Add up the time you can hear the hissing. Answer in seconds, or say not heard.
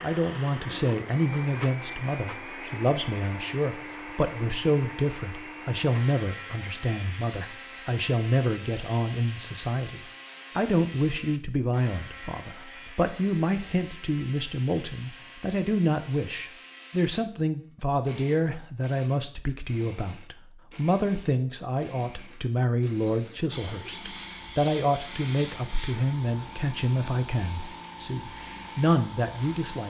6 s.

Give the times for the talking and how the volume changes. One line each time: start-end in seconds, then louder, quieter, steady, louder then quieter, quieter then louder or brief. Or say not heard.
0.0-29.8 steady.